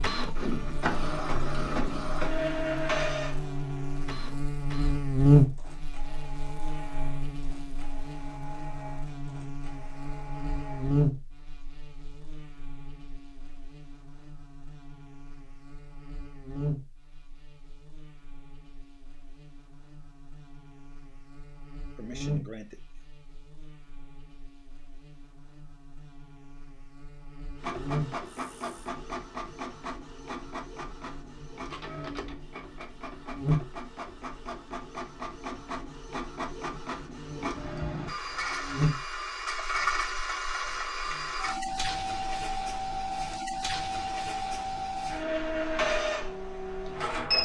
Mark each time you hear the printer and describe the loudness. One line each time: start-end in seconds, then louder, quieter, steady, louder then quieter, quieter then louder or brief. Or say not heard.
0.0-11.1 quieter
27.6-47.3 louder.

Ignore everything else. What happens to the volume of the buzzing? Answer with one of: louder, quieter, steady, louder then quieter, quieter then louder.
quieter then louder.